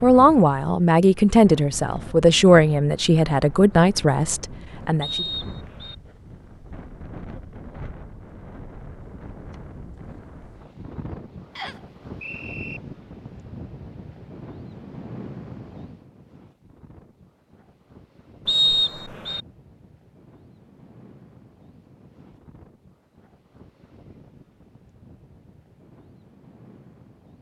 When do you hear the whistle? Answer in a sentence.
You can hear the whistle from 5.0 to 6.0 s, from 11.6 to 12.8 s and from 18.4 to 19.4 s.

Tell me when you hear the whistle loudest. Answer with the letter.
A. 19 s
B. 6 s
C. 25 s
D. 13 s
A.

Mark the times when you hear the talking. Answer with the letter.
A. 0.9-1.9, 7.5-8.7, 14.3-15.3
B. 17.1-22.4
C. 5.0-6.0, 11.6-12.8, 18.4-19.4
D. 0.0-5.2
D.